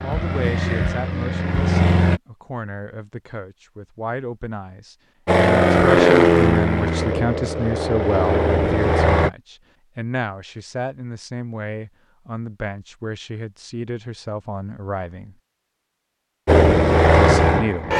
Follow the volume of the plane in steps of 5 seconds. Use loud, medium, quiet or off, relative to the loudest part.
medium, loud, off, loud.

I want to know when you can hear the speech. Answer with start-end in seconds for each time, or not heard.
0.0-15.3, 17.1-17.9.